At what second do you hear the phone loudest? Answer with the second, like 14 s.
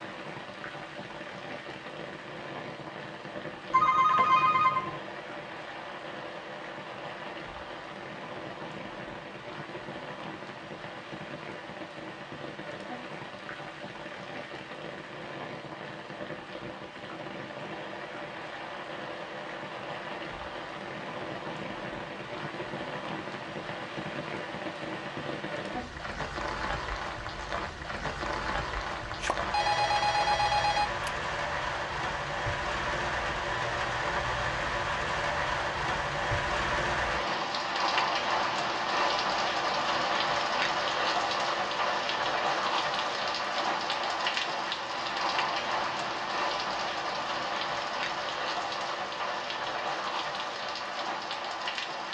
4 s.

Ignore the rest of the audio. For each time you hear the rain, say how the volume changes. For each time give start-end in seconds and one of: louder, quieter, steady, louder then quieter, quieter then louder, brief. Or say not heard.
0.0-52.0 louder.